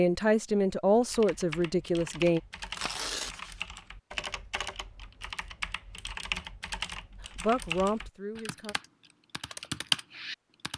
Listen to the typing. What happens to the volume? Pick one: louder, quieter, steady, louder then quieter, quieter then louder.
louder.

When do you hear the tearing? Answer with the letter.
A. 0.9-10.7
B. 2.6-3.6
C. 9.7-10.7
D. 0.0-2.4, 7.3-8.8
B.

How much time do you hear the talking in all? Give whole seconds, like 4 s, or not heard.
4 s.